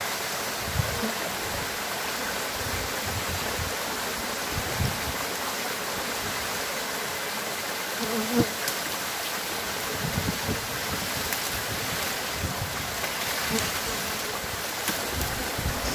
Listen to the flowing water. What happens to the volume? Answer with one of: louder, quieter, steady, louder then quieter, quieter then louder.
steady.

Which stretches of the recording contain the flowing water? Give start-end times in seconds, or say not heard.
0.0-15.9.